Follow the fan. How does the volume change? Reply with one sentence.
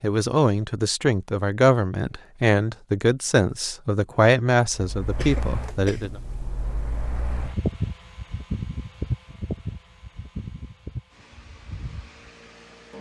The volume of the fan goes up, then down.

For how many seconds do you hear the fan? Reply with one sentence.
You can hear the fan for 8 seconds altogether.